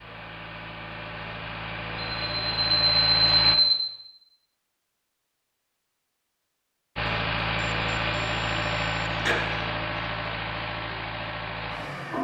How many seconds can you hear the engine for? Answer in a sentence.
The engine can be heard for 9 seconds in total.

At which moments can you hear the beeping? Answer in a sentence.
The beeping can be heard from 2.0 to 3.8 s and from 7.6 to 9.4 s.